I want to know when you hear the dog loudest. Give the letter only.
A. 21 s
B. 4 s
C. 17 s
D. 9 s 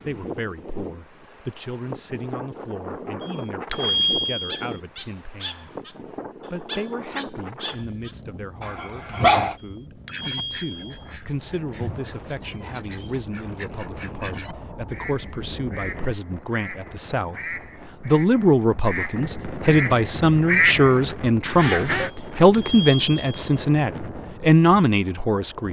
D.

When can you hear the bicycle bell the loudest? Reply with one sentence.
The loudest moment of the bicycle bell is at 4 seconds.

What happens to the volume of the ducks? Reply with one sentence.
The loudness of the ducks goes up.